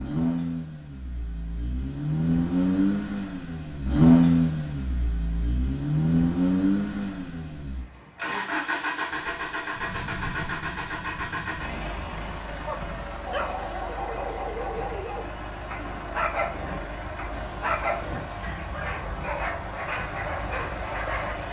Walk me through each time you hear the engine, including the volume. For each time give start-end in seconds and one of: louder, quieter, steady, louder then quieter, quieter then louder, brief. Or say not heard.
0.0-21.4 quieter.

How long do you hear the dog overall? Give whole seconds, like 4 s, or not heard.
9 s.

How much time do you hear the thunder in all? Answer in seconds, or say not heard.
4 s.